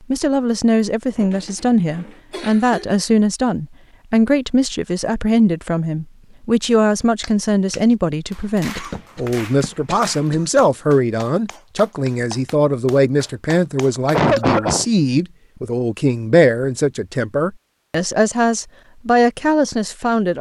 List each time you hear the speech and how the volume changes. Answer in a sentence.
The speech can be heard from 0.1 to 20.3 s, at a steady volume.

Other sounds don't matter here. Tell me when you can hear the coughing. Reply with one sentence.
You can hear the coughing from 1.1 to 2.9 s, from 8.8 to 10.4 s and from 14.1 to 14.8 s.